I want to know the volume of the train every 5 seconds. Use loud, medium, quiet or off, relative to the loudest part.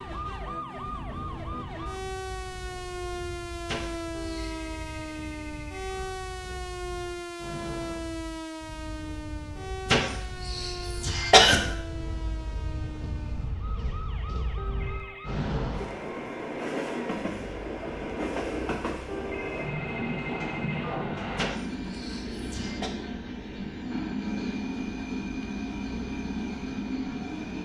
quiet, quiet, medium, loud, loud, loud.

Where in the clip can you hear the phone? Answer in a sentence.
You can hear the phone from 4.1 to 6.1 s, from 14.6 to 15.4 s and from 19.1 to 20.9 s.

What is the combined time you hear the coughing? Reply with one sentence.
You can hear the coughing for 4 seconds altogether.